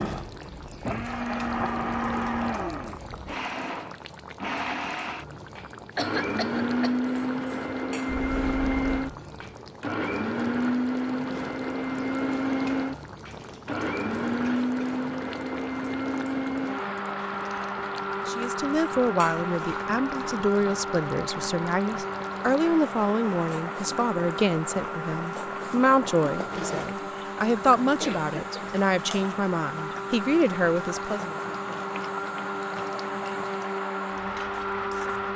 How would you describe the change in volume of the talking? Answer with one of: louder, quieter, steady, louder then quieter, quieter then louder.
steady.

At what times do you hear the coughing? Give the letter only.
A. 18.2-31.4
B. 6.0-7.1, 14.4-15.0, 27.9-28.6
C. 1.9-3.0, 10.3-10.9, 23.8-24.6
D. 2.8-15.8
B.